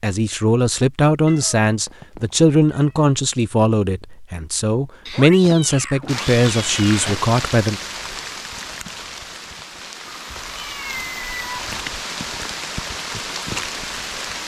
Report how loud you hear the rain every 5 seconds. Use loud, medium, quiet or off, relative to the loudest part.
off, loud, loud.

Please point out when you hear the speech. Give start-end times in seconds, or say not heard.
0.0-7.8.